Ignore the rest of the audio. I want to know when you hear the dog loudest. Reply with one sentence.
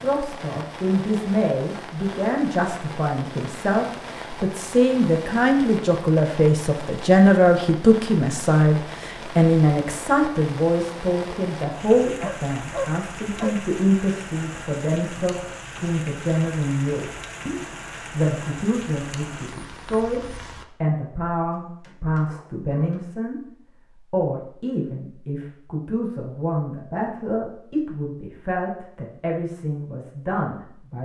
The loudest moment of the dog is at 13 seconds.